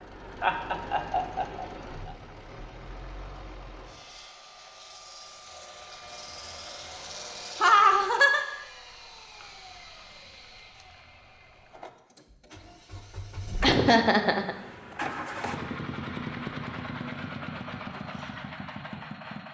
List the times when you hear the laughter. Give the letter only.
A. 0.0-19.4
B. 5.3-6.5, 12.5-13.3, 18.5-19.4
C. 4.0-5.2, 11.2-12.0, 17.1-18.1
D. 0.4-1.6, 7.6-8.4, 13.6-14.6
D.